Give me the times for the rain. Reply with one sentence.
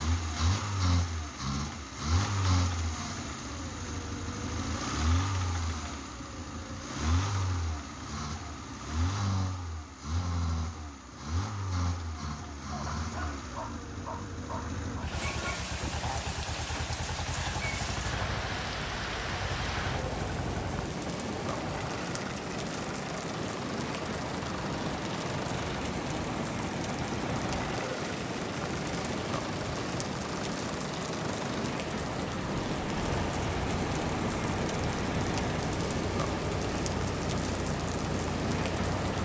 The rain can be heard from 14.9 to 39.1 s.